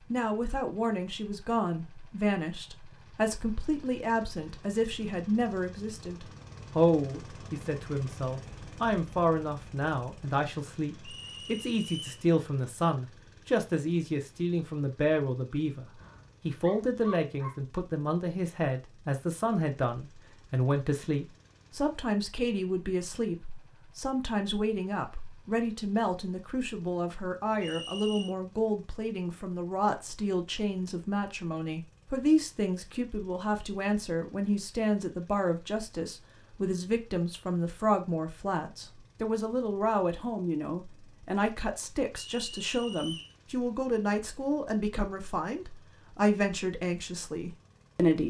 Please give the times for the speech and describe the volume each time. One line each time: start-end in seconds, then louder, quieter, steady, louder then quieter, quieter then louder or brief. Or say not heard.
0.1-48.2 steady.